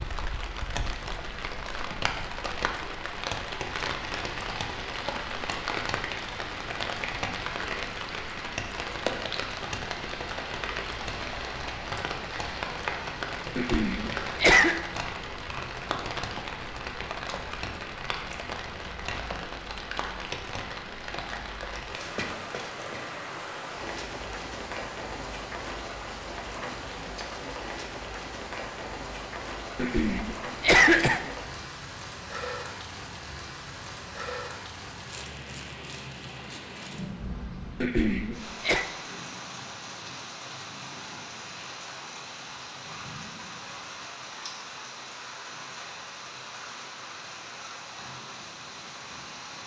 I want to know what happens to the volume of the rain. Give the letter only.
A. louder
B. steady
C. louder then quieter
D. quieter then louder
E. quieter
E.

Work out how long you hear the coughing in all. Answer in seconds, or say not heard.
4 s.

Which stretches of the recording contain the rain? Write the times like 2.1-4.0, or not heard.
0.0-49.6.